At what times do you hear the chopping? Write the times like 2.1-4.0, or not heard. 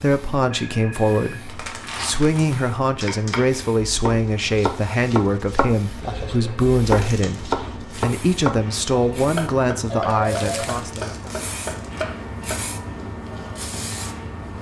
3.0-12.6.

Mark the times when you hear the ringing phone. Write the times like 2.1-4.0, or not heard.
0.5-1.4, 6.0-6.8, 9.8-10.7.